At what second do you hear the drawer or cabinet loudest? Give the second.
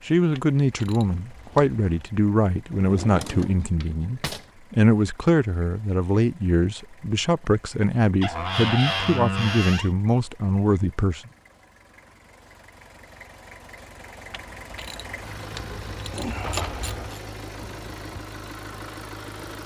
9 s.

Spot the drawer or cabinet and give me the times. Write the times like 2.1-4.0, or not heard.
2.7-4.5, 8.2-9.9, 16.2-16.8.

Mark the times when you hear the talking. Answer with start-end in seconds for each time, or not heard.
0.1-11.3.